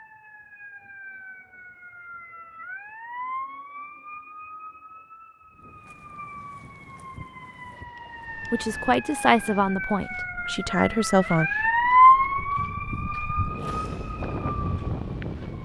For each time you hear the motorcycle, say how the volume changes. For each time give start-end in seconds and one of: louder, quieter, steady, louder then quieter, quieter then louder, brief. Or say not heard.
not heard.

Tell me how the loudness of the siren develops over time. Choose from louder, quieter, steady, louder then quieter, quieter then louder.
louder then quieter.